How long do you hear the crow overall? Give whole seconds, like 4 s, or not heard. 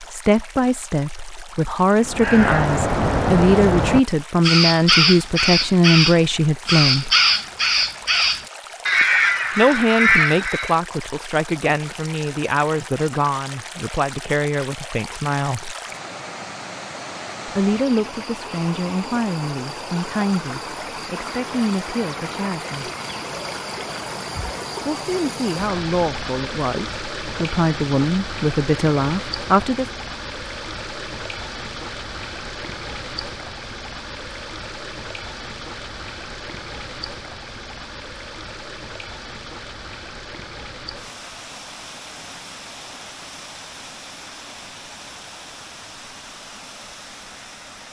9 s.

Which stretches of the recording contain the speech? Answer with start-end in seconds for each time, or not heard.
0.0-7.1, 9.6-15.8, 17.4-22.9, 24.9-29.9.